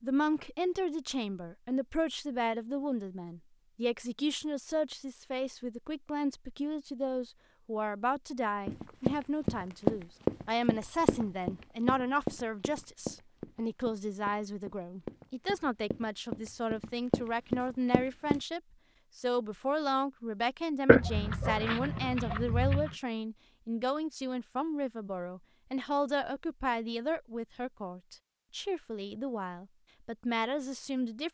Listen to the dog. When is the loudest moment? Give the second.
21 s.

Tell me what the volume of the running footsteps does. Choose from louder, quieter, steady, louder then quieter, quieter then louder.
quieter then louder.